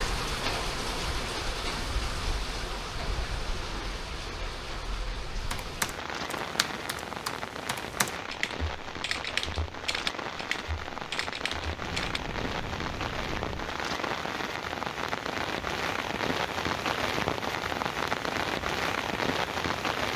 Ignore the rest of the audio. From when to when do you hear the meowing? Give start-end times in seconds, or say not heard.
11.8-13.8.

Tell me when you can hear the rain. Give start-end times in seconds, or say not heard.
0.0-20.1.